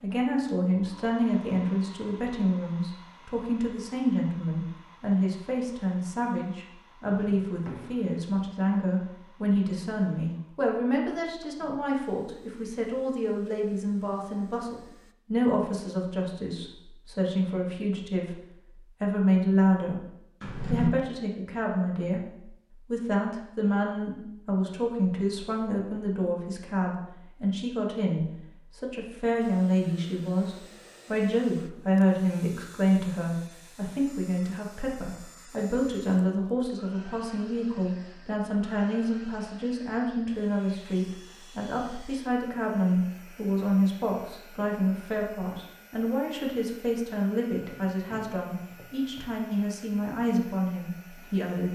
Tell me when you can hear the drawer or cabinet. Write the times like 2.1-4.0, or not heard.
7.0-8.2, 20.4-20.9, 47.5-49.2.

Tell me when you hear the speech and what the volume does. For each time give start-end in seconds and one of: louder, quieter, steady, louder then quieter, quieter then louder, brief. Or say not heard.
0.0-51.6 steady.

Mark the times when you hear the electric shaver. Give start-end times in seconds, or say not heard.
not heard.